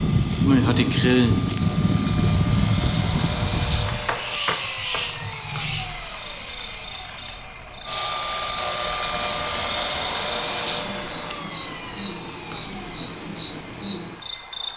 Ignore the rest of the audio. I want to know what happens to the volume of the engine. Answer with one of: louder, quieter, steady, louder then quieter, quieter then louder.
louder then quieter.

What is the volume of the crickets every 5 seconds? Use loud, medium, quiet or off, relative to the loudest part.
loud, medium, loud.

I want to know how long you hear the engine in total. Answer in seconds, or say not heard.
15 s.